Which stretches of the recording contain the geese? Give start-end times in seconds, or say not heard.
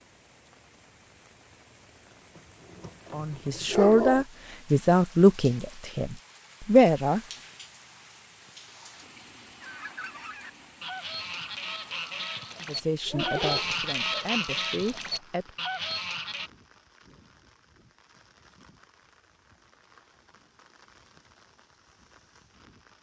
9.6-16.5.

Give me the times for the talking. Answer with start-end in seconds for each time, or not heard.
3.1-7.2, 12.7-15.4.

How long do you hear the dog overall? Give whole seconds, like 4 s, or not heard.
3 s.